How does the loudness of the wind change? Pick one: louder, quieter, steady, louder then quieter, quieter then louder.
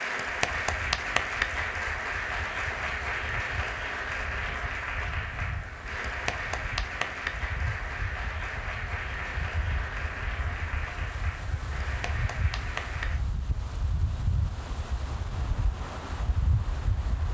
louder.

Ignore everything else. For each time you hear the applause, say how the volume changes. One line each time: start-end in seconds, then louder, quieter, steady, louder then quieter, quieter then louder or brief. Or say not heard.
0.0-13.2 quieter.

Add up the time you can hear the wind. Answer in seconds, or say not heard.
17 s.